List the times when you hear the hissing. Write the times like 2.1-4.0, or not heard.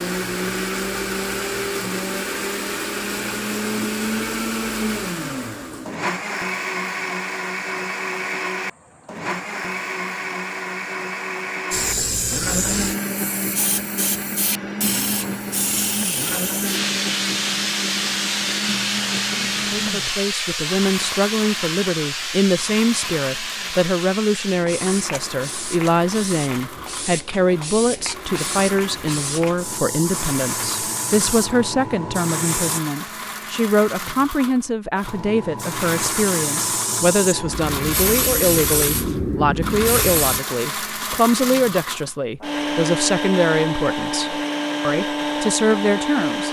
11.7-32.8, 35.0-40.4.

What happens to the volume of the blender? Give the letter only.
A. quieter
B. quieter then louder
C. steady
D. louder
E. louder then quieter
B.